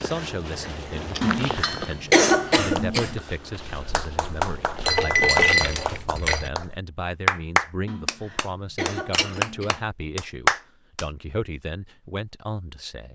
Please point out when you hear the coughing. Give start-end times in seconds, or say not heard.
1.2-3.1, 7.8-9.8.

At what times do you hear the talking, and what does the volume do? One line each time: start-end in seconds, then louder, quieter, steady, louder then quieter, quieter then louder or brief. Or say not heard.
0.0-13.0 steady.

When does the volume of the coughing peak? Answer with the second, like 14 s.
2 s.